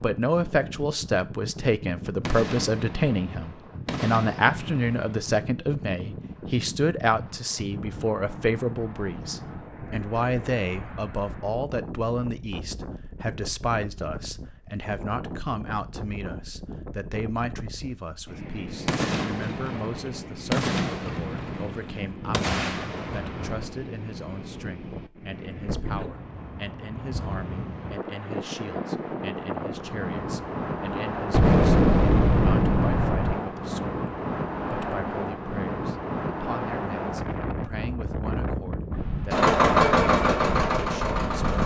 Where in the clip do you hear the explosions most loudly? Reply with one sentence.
The loudest moment of the explosions is at 32 seconds.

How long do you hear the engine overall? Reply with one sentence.
You can hear the engine for 2 seconds altogether.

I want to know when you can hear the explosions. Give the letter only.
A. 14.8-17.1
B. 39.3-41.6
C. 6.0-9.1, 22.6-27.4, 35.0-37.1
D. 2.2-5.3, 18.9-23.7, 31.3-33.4
D.